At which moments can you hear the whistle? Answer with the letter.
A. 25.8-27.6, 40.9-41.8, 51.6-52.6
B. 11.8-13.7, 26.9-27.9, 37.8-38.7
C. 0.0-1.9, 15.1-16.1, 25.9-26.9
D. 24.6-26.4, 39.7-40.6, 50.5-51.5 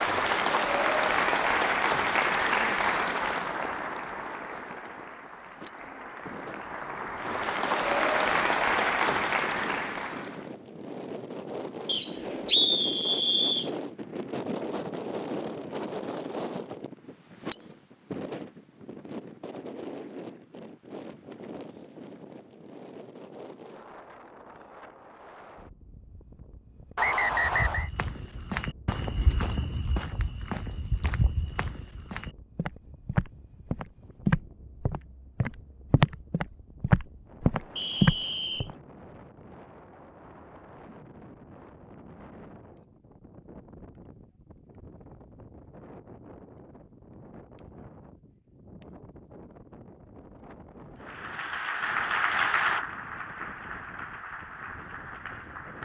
B.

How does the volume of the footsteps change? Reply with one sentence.
The loudness of the footsteps goes up.